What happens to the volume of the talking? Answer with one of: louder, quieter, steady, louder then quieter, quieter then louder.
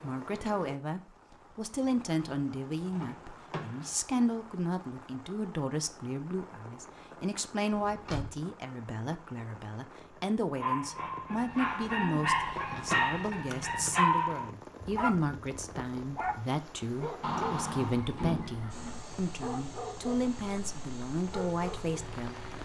steady.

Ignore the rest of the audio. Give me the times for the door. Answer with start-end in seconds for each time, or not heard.
2.9-4.0, 7.7-8.4, 17.2-19.0.